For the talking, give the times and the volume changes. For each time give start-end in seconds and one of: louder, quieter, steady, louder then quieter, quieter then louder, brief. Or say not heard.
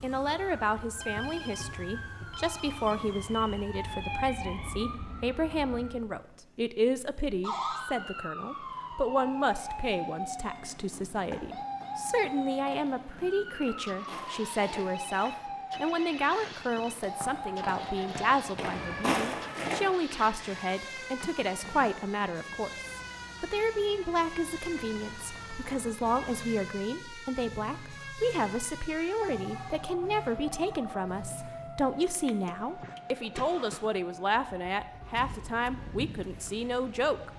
0.0-37.3 steady.